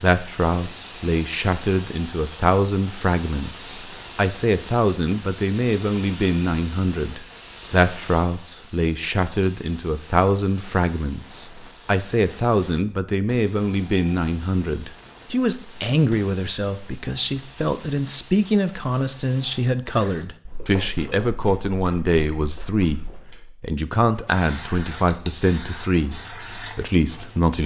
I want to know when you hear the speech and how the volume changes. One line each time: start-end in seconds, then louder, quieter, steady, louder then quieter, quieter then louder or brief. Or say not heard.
0.0-27.6 steady.